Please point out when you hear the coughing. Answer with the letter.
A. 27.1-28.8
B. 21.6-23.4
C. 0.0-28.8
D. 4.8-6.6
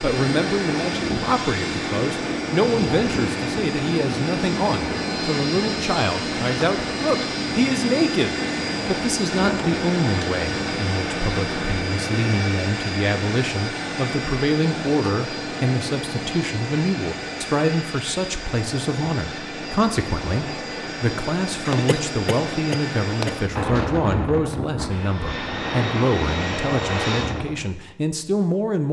B.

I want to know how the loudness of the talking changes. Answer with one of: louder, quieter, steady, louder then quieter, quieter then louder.
steady.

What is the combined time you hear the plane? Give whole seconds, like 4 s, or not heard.
28 s.